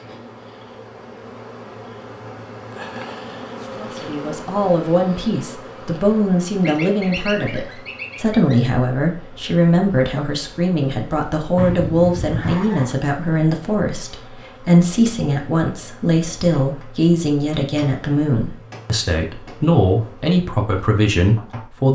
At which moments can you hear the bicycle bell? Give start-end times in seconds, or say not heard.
not heard.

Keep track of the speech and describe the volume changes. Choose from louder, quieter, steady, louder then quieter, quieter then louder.
steady.